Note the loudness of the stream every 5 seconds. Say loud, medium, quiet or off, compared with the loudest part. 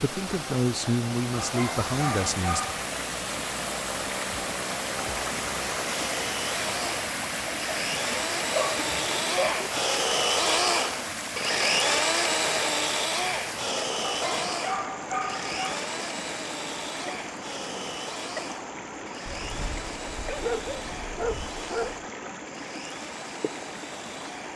loud, loud, loud, medium, medium.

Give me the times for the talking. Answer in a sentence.
You can hear the talking from 0.0 to 2.6 s.